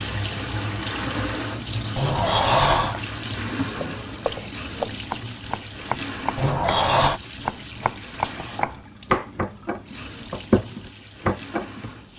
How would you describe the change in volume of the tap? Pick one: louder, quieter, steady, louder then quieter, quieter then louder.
quieter.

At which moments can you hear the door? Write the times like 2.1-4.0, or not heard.
1.9-3.0, 6.3-7.2.